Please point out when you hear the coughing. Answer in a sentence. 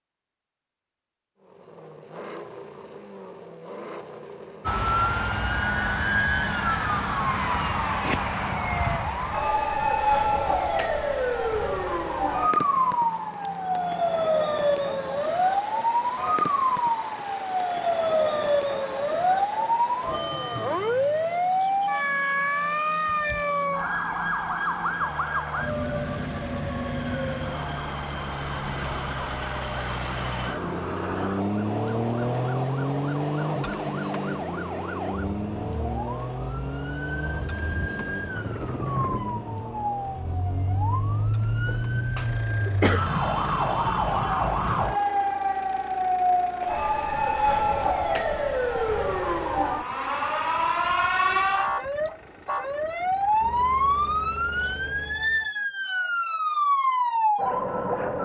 The coughing can be heard from 41.6 to 43.1 s.